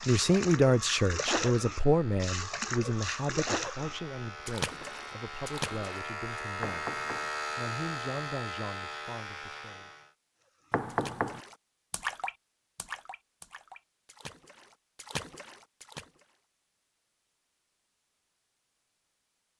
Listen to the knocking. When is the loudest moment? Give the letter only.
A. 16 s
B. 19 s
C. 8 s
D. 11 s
D.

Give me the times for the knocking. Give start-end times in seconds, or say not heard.
6.6-7.3, 10.7-11.4.